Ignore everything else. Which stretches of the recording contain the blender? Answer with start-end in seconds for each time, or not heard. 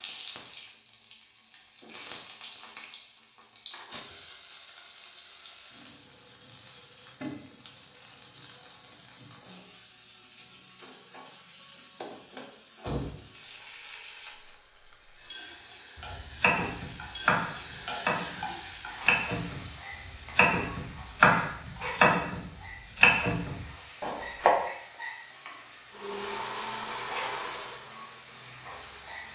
25.9-29.2.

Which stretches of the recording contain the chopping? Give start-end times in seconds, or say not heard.
15.9-24.5.